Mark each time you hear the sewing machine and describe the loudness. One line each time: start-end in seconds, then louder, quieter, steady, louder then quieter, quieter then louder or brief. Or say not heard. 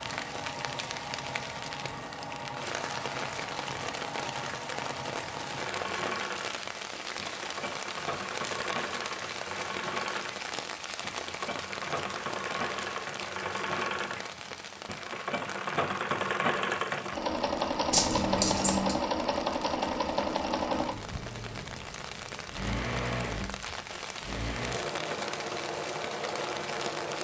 0.0-27.1 louder then quieter.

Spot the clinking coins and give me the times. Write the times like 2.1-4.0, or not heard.
17.9-18.9.